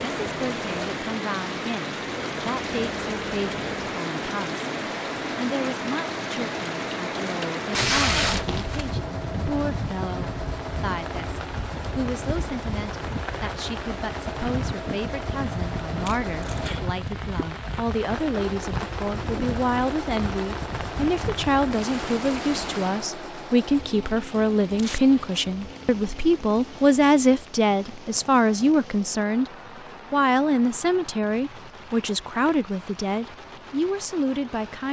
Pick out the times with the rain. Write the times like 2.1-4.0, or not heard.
0.0-34.8.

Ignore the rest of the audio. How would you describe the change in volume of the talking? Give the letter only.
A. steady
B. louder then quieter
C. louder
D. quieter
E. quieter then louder
C.